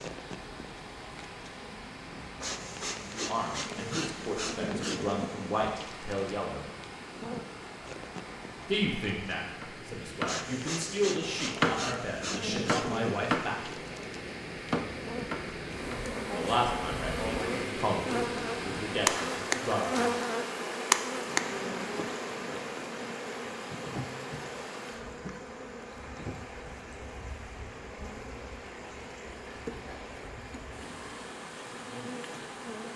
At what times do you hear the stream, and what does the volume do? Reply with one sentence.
You can hear the stream from 0.0 to 32.9 s, getting louder then quieter.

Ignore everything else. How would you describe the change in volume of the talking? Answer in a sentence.
The volume of the talking stays about the same.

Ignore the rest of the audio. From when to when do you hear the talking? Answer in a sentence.
The talking can be heard from 3.0 to 6.7 s, from 8.7 to 13.8 s and from 16.4 to 20.2 s.